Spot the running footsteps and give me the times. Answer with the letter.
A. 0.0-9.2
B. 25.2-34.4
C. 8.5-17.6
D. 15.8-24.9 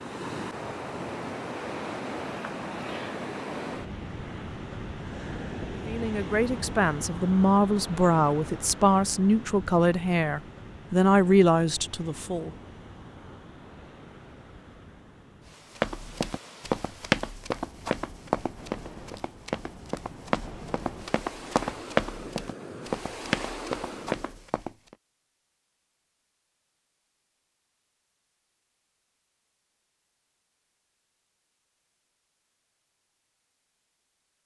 D.